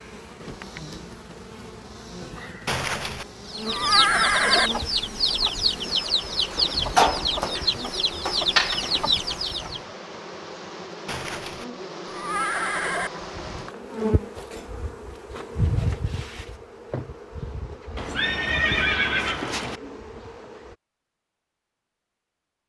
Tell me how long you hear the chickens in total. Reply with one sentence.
The chickens can be heard for 6 seconds in total.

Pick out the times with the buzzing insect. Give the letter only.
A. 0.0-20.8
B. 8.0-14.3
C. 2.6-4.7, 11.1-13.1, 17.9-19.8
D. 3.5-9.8
A.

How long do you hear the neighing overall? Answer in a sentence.
You can hear the neighing for 6 seconds altogether.